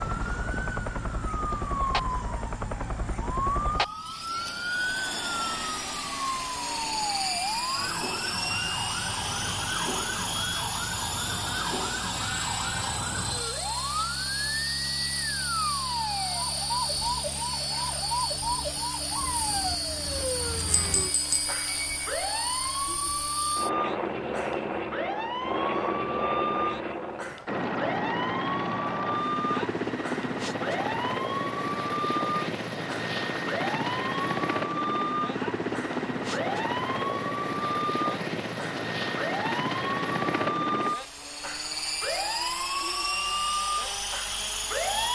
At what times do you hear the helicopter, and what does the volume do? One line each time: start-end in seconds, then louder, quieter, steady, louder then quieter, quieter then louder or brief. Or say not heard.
0.0-45.0 steady.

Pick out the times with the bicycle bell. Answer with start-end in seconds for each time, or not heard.
20.1-22.1.